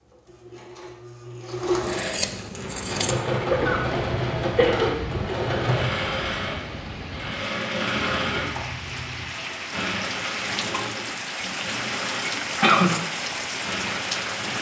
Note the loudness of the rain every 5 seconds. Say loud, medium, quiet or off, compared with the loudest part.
medium, medium, loud.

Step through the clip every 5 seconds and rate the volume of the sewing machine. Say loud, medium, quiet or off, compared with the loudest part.
loud, loud, medium.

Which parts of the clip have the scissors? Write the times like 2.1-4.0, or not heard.
1.8-3.2, 8.2-9.3.